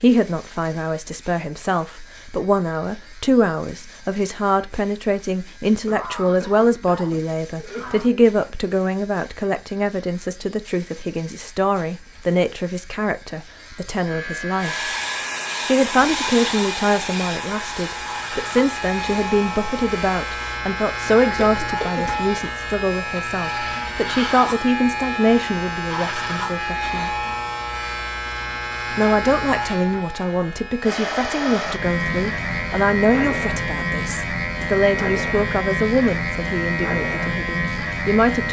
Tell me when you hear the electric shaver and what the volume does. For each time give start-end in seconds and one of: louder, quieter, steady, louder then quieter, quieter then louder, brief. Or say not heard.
0.0-38.4 louder.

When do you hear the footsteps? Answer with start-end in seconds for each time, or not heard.
not heard.